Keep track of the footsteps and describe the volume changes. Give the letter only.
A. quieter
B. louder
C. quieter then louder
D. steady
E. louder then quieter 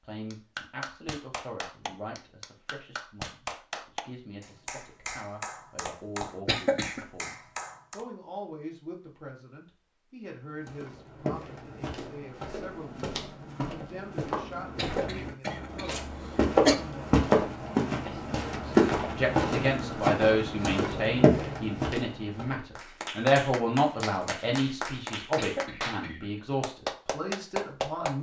B.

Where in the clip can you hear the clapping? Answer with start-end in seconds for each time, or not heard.
0.3-8.1, 22.8-28.1.